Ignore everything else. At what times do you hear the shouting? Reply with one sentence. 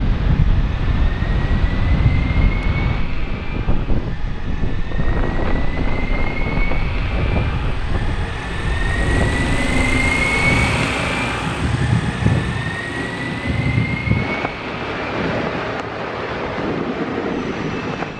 You can't hear the shouting here.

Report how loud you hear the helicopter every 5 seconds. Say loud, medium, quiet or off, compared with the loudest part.
medium, loud, loud, medium.